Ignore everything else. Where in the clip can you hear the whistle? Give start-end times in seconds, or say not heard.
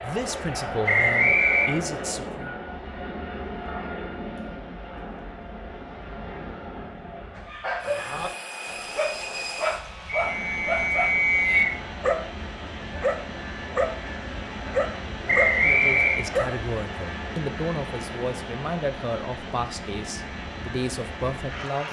0.8-1.7, 10.2-11.7, 15.2-16.2.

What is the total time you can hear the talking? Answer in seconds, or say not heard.
9 s.